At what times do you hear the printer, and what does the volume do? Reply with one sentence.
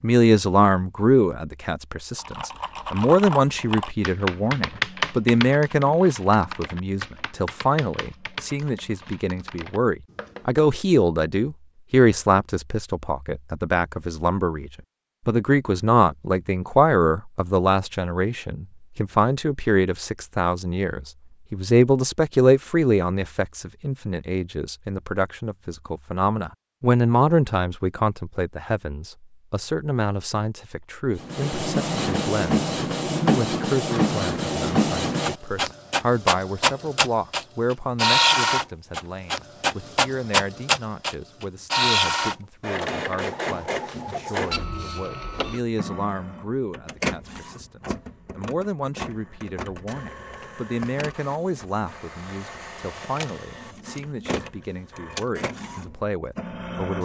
The printer can be heard from 31.2 to 57.0 s, getting quieter.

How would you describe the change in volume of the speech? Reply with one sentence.
The loudness of the speech goes down.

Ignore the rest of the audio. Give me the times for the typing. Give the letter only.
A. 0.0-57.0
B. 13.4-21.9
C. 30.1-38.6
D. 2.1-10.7
D.